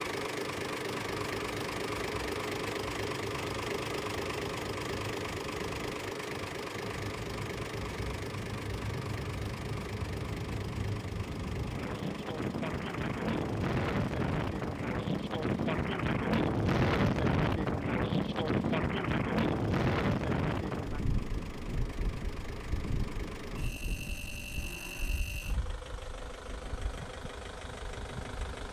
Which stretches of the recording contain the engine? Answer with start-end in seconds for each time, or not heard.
0.0-28.6.